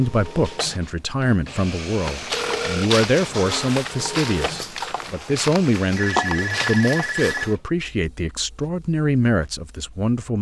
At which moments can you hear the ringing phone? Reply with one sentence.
You can hear the ringing phone from 2.3 to 2.9 s and from 6.0 to 7.5 s.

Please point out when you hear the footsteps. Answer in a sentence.
The footsteps can be heard from 2.0 to 7.5 s.